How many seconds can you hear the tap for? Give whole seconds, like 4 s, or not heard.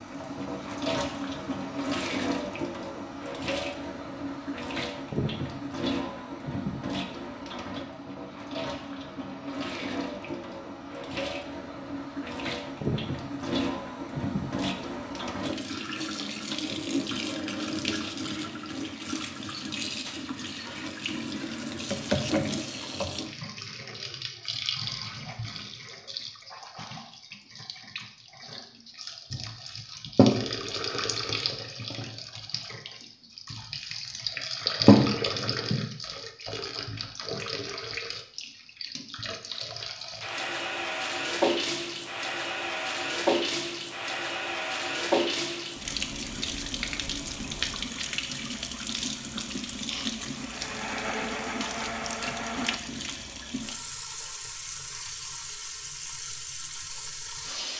58 s.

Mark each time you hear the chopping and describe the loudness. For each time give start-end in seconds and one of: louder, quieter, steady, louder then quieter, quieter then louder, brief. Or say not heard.
not heard.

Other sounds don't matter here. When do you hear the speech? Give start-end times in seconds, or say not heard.
not heard.